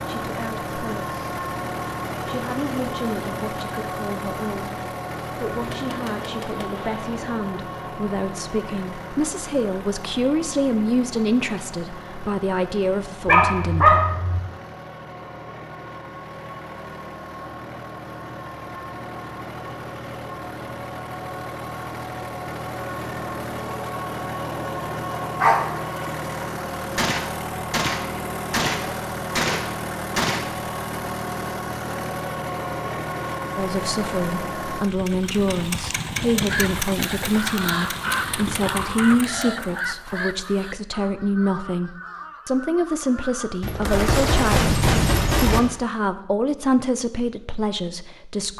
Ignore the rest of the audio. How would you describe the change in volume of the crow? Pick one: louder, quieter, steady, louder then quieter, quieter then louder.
quieter.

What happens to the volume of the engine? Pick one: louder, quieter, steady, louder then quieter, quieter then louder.
quieter then louder.